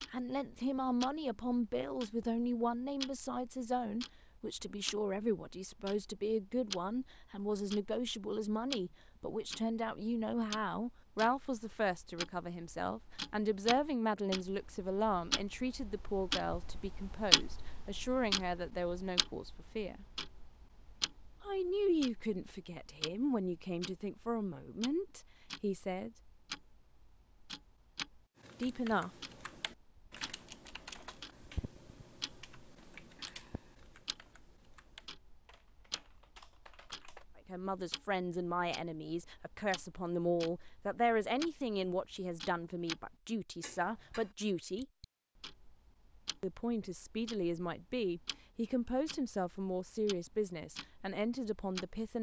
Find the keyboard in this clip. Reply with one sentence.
The keyboard can be heard from 28.4 to 37.2 s.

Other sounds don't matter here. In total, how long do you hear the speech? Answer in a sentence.
You can hear the speech for 38 seconds altogether.